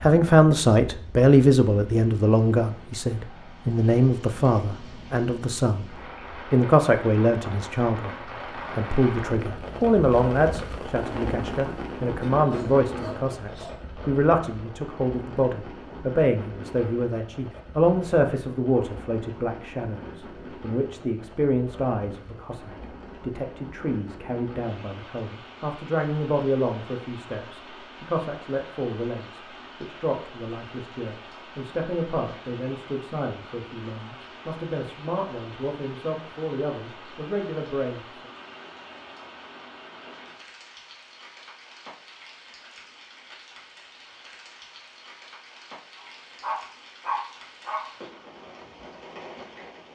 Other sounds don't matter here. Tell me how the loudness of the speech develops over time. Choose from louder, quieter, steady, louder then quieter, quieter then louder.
quieter.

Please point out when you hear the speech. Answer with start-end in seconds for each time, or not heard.
0.0-8.2, 8.8-38.2.